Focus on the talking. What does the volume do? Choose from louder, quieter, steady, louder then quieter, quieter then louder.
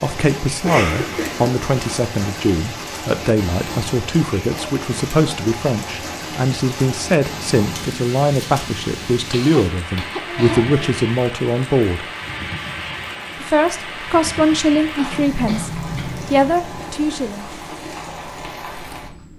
steady.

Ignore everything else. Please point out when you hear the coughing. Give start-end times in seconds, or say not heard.
0.6-2.0, 9.3-11.1, 14.9-16.2.